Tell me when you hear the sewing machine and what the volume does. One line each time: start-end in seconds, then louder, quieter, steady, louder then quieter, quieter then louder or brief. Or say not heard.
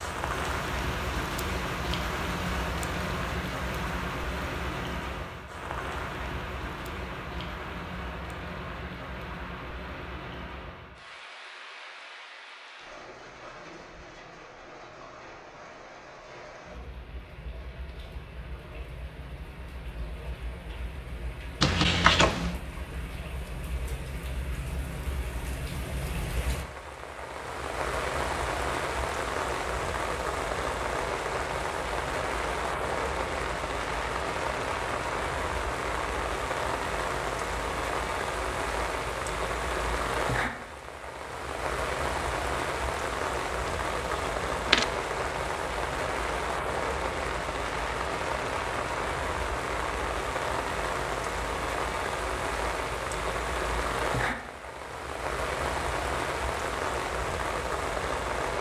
not heard.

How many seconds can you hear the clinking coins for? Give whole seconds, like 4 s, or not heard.
2 s.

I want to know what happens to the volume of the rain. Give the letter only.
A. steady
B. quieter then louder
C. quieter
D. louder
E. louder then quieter
B.